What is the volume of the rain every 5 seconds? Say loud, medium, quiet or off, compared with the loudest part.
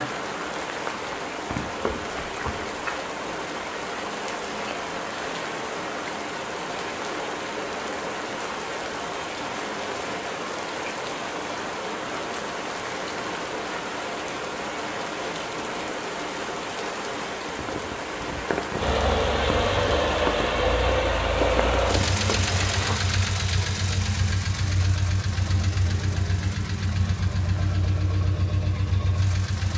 loud, loud, loud, loud, loud, off.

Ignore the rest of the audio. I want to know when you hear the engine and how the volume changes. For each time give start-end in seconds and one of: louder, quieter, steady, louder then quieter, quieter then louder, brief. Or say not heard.
18.8-29.7 quieter.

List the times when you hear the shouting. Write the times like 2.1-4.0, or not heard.
not heard.